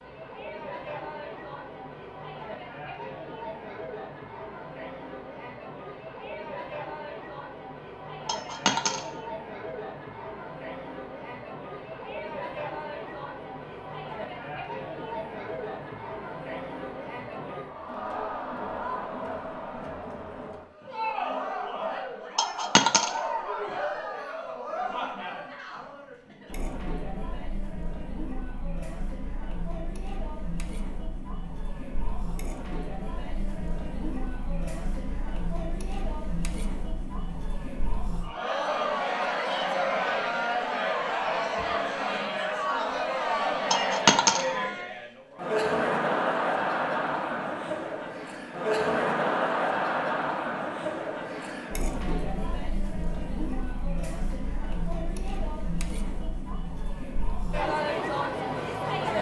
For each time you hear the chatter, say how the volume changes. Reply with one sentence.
The chatter can be heard from 0.0 to 59.1 s, getting louder.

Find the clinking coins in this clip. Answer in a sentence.
You can hear the clinking coins from 8.2 to 9.1 s, from 22.4 to 23.2 s and from 43.7 to 44.5 s.